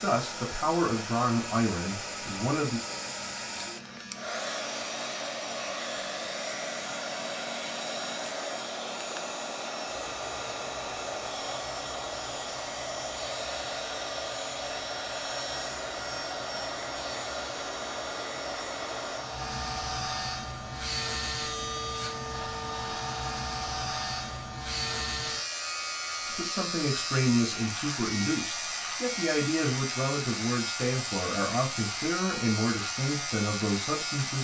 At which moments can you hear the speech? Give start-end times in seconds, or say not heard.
0.0-2.8, 26.4-34.3.